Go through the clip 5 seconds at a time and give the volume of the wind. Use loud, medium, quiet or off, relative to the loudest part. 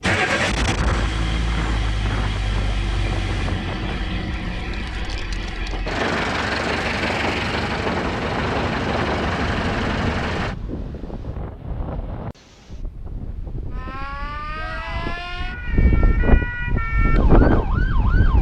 medium, medium, quiet, loud.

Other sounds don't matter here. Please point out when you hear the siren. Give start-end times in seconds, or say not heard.
13.7-18.3.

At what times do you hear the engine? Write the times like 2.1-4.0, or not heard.
0.0-10.6.